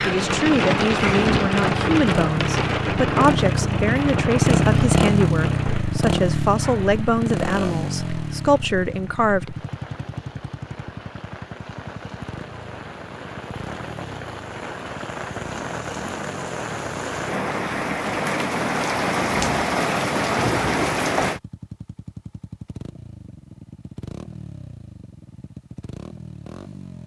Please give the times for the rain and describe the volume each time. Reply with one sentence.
The rain can be heard from 0.0 to 21.4 s, getting quieter then louder.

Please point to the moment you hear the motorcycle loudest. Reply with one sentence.
The volume of the motorcycle peaks at 5 seconds.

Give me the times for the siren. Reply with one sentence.
The siren can't be heard in this clip.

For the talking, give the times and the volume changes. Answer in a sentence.
You can hear the talking from 0.1 to 9.6 s, at a steady volume.